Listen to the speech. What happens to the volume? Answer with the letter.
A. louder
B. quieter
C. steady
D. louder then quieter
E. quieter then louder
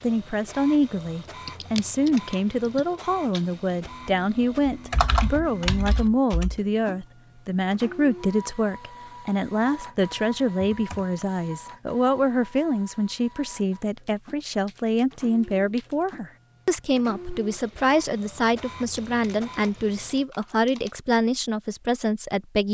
C.